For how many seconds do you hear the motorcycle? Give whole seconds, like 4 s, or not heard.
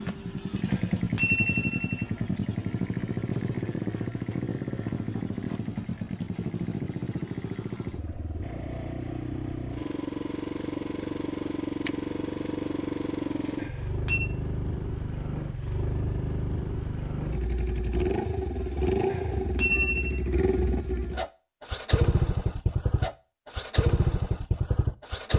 25 s.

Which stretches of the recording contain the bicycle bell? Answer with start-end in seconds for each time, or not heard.
0.7-2.0, 13.6-14.2, 19.1-20.1.